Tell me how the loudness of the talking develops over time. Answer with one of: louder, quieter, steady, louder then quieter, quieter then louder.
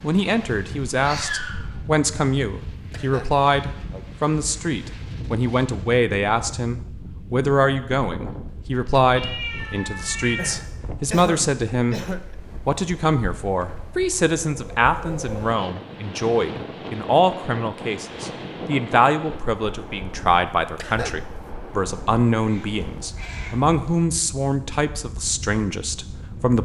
steady.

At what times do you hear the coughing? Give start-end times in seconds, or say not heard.
2.8-3.3, 10.3-12.3, 20.6-21.4.